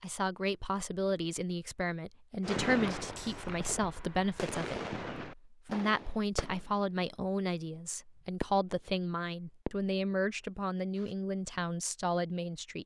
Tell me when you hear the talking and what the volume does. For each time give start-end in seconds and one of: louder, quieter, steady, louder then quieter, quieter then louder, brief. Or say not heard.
0.0-12.8 steady.